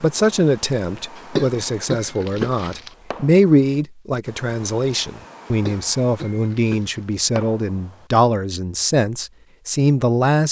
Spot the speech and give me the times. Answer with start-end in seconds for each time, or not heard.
0.0-10.4.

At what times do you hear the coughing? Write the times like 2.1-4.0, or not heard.
1.1-2.9, 5.5-7.0.